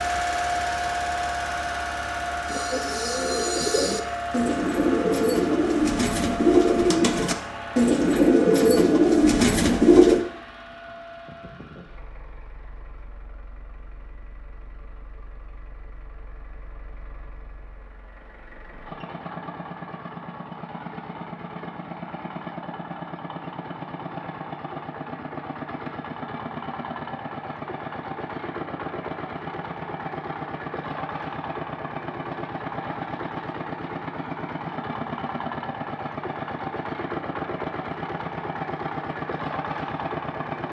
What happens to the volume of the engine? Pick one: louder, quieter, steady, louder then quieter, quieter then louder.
quieter then louder.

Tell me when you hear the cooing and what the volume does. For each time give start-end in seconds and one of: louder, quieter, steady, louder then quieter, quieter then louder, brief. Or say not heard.
2.5-10.2 louder.